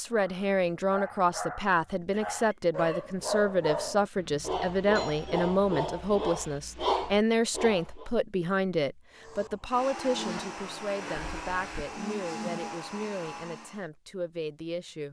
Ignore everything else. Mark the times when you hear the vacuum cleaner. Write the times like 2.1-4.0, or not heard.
9.2-13.8.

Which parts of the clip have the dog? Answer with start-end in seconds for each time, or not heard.
0.1-8.1.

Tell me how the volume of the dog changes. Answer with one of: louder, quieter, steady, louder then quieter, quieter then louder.
louder.